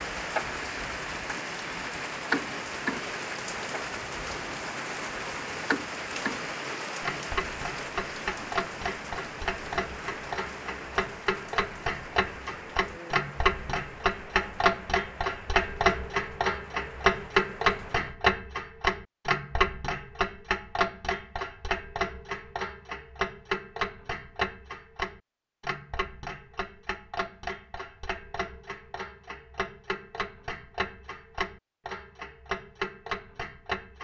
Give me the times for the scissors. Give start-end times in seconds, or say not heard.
not heard.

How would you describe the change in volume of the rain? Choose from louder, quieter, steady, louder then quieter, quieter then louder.
quieter.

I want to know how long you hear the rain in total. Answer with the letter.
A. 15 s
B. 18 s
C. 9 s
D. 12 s
B.